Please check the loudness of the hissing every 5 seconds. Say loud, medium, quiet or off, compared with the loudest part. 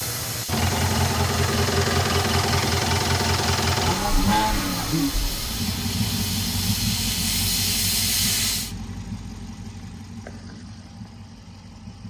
medium, loud, off.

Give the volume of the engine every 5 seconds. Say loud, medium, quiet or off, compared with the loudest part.
loud, medium, quiet.